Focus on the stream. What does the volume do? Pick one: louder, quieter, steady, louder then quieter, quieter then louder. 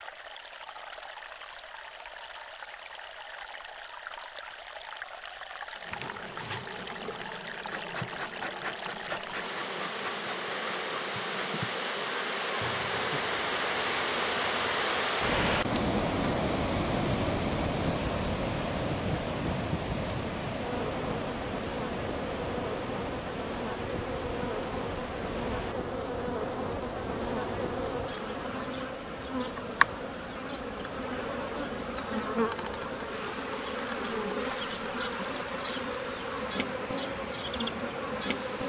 louder then quieter.